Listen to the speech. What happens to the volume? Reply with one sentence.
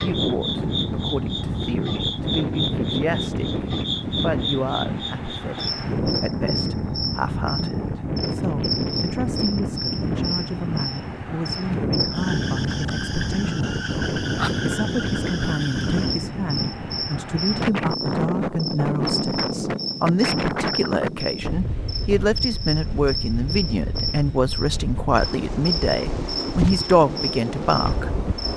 The volume of the speech goes up.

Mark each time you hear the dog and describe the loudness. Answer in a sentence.
You can't hear the dog here.